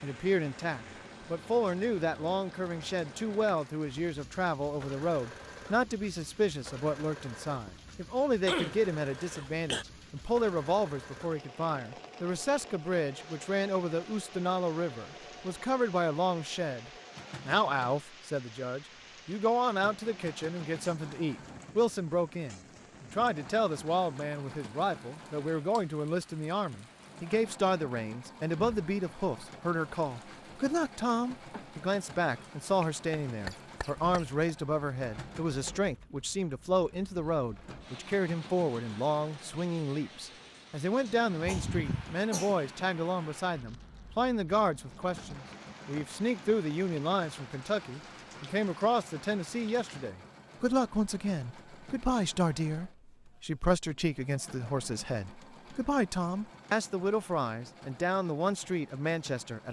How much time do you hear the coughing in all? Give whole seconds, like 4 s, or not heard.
4 s.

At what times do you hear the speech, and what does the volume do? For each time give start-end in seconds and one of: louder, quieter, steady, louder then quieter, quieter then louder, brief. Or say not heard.
0.0-59.6 steady.